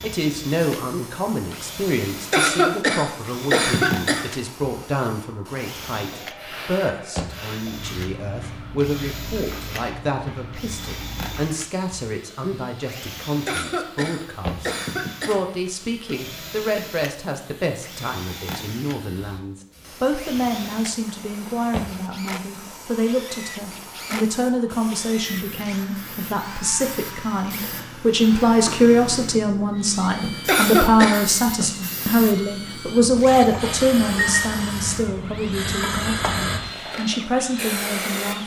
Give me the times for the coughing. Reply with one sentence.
The coughing can be heard from 2.3 to 4.2 s, from 13.4 to 15.4 s and from 30.4 to 31.2 s.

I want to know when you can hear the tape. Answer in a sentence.
You can't hear the tape here.